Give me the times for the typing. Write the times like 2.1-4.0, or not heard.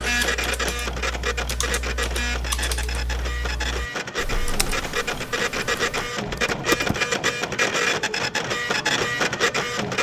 0.0-7.0.